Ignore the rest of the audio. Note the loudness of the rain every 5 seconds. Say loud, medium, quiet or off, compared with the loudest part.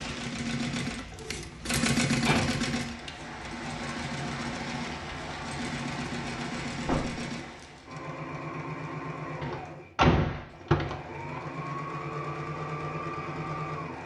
loud, loud, off.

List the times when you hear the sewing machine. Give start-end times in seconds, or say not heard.
0.0-14.0.